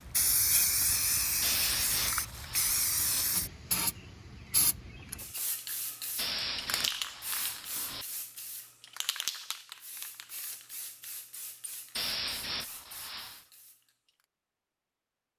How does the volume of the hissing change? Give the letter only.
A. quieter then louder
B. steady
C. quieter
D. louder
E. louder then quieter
C.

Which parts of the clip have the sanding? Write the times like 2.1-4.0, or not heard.
1.4-3.2, 6.2-8.1, 11.9-13.4.